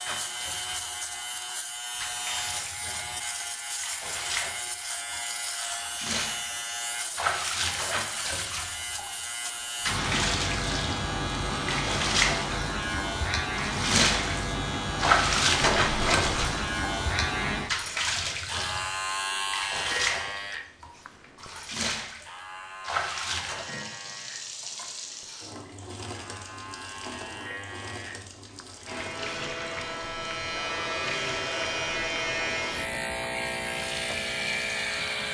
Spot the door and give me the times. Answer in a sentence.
You can hear the door from 15.6 to 16.5 s.